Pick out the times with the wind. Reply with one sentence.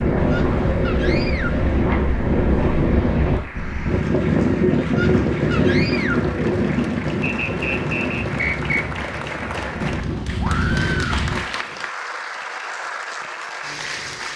You can hear the wind from 0.0 to 11.4 s.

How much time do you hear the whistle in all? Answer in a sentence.
The whistle can be heard for 2 seconds in total.